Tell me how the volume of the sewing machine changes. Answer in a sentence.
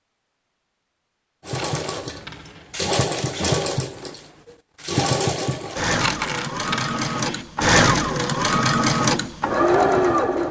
The loudness of the sewing machine goes up.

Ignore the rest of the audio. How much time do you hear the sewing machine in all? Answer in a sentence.
You can hear the sewing machine for 9 seconds altogether.